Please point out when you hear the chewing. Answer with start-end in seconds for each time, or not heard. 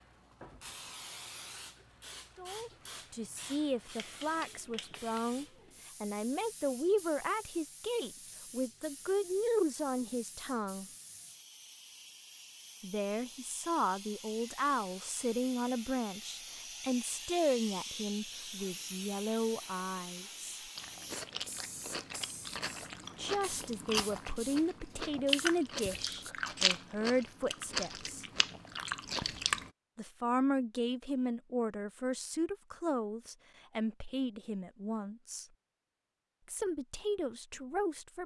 20.8-29.7.